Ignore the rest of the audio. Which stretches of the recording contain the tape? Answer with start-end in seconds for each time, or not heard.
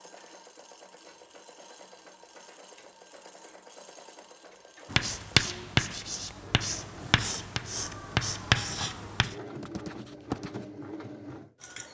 not heard.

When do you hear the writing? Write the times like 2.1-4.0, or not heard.
4.9-10.7.